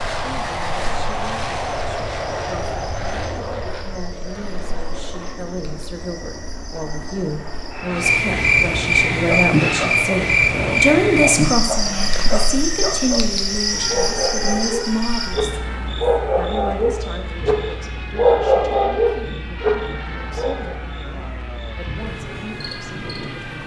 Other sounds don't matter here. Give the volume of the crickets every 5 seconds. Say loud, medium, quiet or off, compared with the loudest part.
quiet, loud, loud, quiet, quiet.